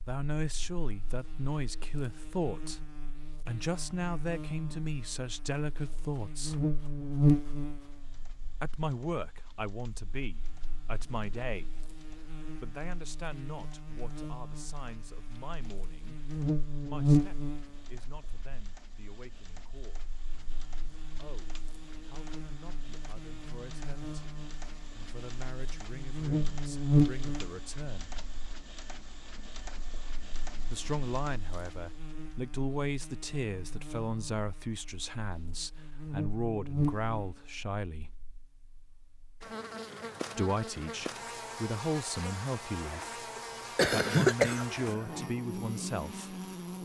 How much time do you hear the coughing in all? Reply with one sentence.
The coughing can be heard for 2 seconds in total.